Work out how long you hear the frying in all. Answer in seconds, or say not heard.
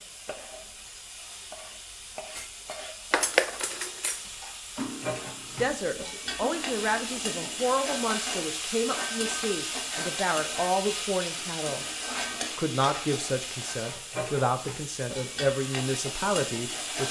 17 s.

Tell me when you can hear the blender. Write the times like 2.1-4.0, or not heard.
not heard.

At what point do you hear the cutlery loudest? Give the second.
3 s.